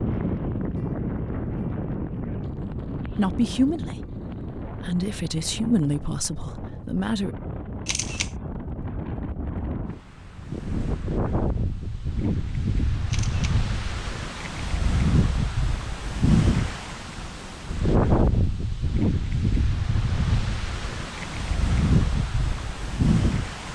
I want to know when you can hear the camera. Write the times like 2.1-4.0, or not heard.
7.8-8.3, 13.1-13.6.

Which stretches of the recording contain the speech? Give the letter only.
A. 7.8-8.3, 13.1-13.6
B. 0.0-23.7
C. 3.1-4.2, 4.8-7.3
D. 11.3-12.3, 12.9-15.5
C.